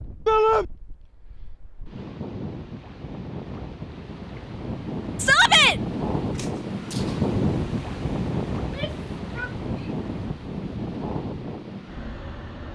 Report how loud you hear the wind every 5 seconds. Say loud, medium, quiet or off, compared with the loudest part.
medium, loud, medium.